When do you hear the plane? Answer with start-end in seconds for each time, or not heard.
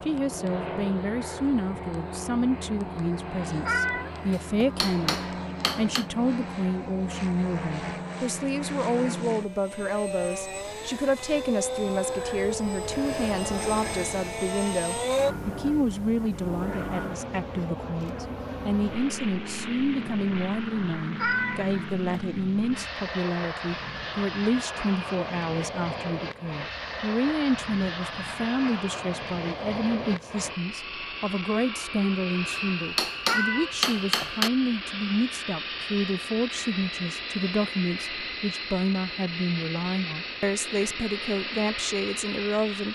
0.0-42.9.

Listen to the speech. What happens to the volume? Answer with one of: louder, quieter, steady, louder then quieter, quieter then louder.
steady.